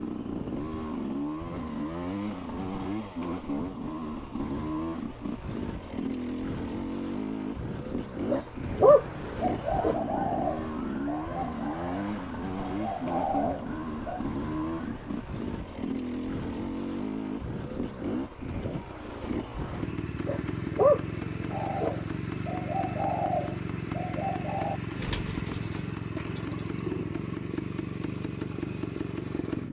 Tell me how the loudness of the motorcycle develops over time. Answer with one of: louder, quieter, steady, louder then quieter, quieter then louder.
steady.